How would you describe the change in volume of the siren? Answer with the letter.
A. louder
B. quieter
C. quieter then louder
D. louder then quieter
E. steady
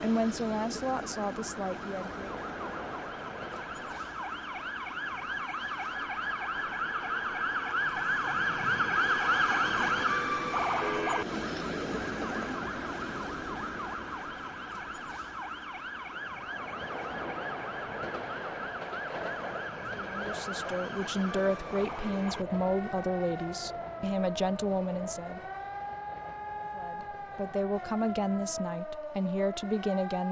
D.